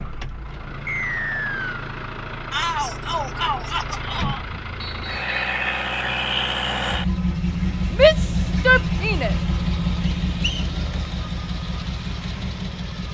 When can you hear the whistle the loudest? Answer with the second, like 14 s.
1 s.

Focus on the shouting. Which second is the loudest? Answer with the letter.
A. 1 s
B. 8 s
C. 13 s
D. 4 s
B.